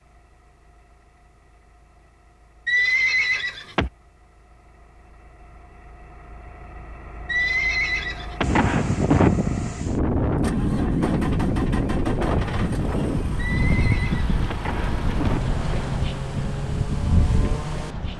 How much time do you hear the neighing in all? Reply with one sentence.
The neighing can be heard for 5 seconds in total.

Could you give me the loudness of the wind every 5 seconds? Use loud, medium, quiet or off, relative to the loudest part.
off, loud, loud, medium.